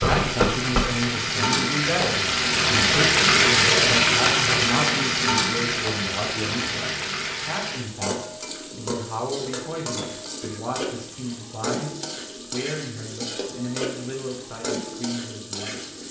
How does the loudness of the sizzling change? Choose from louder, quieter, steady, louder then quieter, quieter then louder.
quieter.